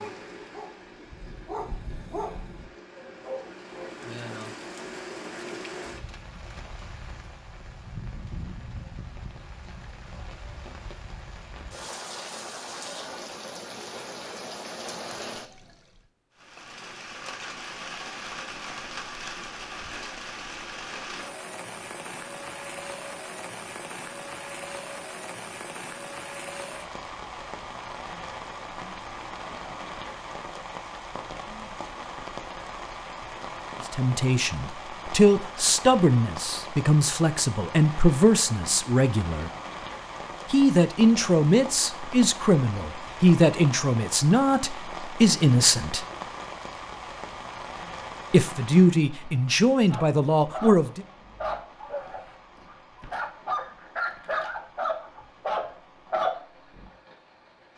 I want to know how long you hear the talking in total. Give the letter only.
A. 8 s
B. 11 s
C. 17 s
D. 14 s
D.